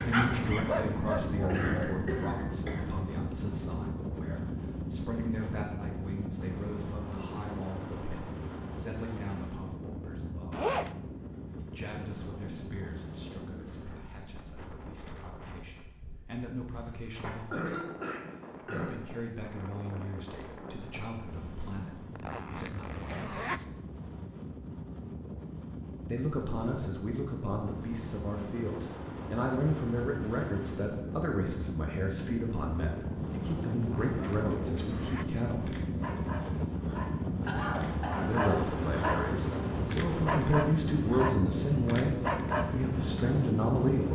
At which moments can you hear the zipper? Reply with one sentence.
You can hear the zipper from 10.5 to 10.9 s, from 22.1 to 23.6 s and from 33.8 to 35.3 s.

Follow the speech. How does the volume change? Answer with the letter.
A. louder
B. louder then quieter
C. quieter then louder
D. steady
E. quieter
C.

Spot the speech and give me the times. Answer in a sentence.
You can hear the speech from 0.0 to 10.7 s, from 11.6 to 17.8 s, from 18.7 to 23.6 s, from 26.1 to 35.7 s and from 38.2 to 44.0 s.